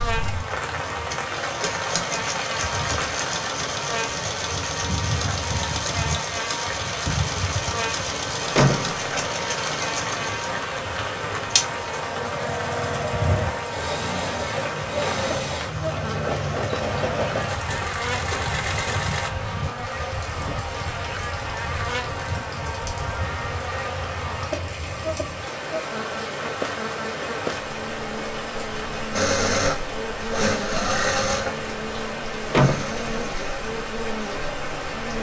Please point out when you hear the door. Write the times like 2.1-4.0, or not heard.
8.6-9.3, 32.5-33.2.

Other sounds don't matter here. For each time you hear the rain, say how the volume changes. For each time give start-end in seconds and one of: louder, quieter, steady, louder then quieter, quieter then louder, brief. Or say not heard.
0.0-35.1 steady.